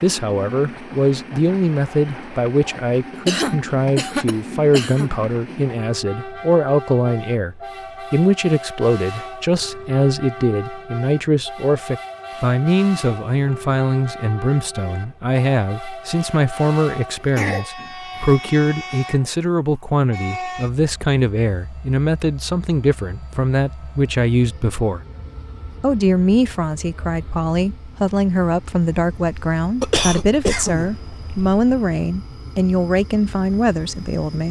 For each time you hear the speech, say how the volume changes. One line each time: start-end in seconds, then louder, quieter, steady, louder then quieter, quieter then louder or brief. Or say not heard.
0.0-25.0 steady
25.8-34.4 steady.